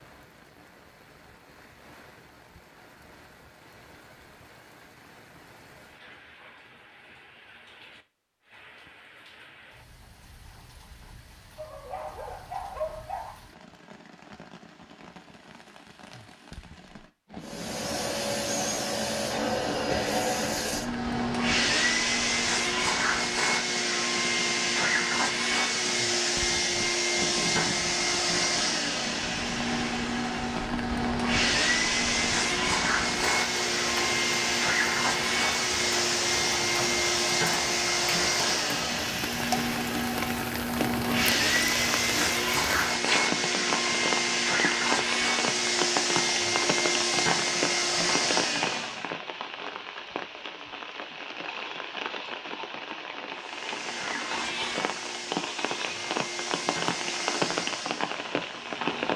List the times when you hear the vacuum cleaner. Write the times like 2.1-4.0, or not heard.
17.4-49.1, 53.4-59.1.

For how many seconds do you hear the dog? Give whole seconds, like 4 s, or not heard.
2 s.